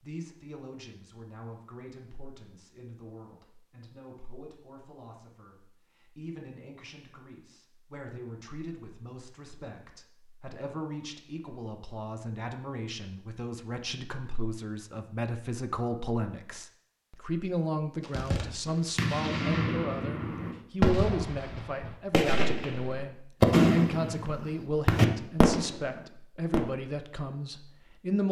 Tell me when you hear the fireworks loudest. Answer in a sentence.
The volume of the fireworks peaks at 24 seconds.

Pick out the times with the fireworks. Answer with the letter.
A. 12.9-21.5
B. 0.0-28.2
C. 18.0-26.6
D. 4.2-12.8
C.